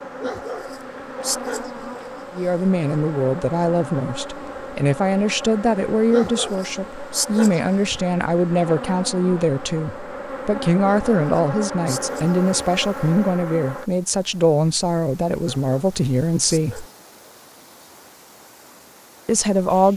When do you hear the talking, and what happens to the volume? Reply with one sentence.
The talking can be heard from 2.4 to 16.9 s, at a steady volume; and briefly from 19.2 to 19.9 s.